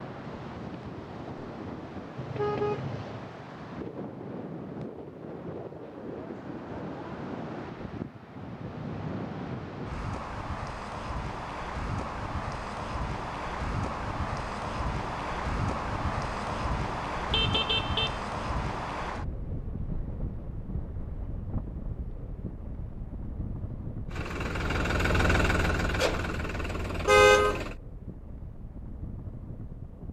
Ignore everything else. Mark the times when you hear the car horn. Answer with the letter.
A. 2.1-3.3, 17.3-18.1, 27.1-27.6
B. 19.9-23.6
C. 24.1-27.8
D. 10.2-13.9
A.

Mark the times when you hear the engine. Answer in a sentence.
You can hear the engine from 24.1 to 27.8 s.